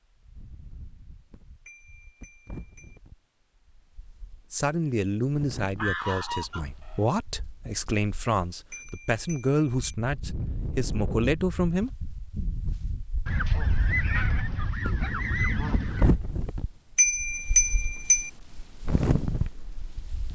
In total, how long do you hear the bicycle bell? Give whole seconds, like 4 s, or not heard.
4 s.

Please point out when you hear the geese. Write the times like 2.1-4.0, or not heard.
5.8-7.0, 13.2-16.1.